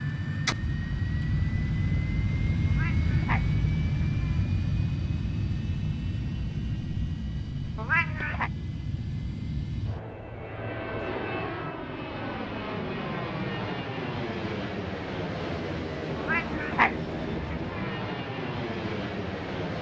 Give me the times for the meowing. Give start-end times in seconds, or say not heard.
2.6-4.5, 7.8-8.5, 16.1-17.9.